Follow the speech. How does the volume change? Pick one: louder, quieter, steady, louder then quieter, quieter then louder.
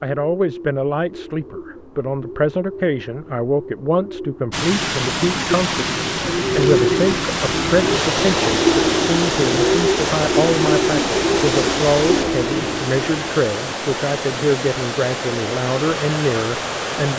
steady.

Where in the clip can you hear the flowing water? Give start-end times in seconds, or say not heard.
4.5-17.1.